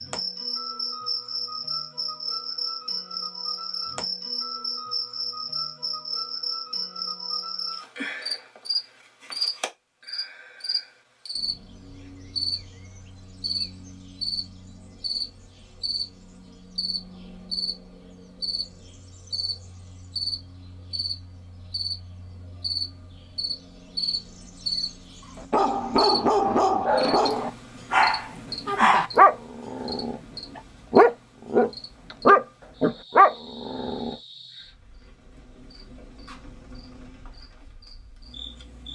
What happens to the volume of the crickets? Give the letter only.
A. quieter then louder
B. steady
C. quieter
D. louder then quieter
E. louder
C.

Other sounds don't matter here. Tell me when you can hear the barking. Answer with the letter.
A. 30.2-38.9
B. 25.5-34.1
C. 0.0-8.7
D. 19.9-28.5
B.